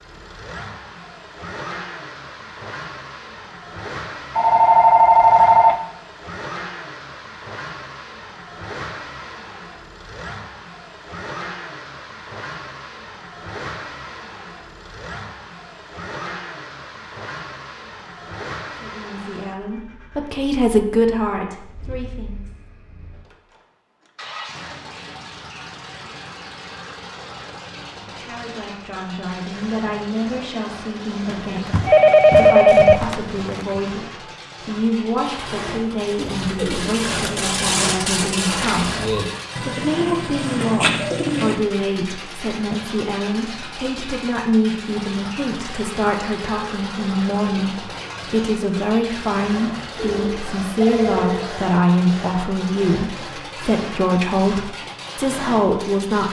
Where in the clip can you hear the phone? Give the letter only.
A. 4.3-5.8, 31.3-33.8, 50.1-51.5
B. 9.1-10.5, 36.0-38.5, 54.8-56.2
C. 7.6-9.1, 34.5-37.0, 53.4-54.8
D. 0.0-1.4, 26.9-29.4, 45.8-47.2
A.